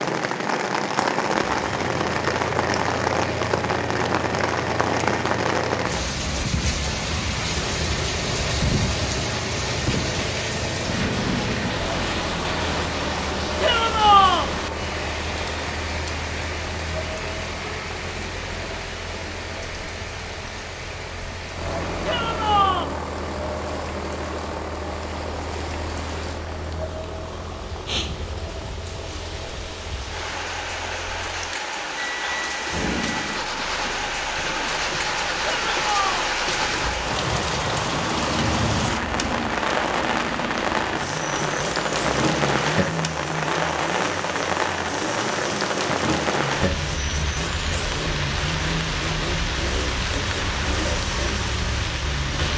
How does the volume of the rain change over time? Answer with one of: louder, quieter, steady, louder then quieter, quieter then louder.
quieter then louder.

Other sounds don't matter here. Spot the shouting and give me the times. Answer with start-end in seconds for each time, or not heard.
13.6-14.5, 22.1-22.9, 35.4-36.3.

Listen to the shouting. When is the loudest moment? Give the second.
14 s.